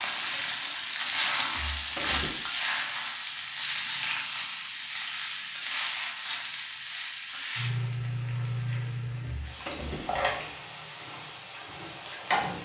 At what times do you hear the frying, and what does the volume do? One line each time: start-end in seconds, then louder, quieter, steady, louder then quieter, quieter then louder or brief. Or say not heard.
0.0-12.6 quieter.